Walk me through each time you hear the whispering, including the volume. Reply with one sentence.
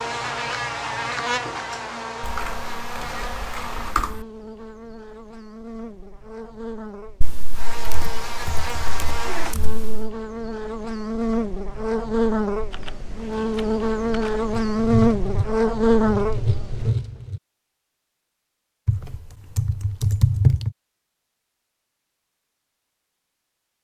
The whispering can't be heard in this clip.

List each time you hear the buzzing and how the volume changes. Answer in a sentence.
The buzzing can be heard from 0.0 to 16.9 s, getting quieter then louder.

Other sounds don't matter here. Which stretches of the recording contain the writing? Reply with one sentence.
The writing can be heard from 14.5 to 17.4 s.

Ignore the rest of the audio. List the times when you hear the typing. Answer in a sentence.
You can hear the typing from 2.2 to 4.2 s, from 7.2 to 10.2 s, from 12.7 to 14.4 s and from 18.9 to 20.7 s.